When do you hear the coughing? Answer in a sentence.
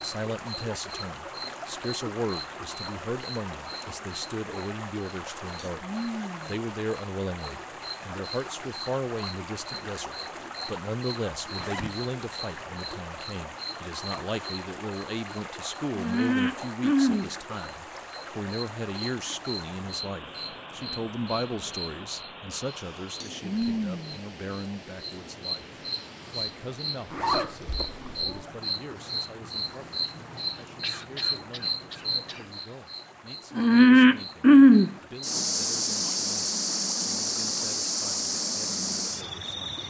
The coughing can be heard from 30.4 to 32.8 s.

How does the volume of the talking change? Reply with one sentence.
The loudness of the talking goes down.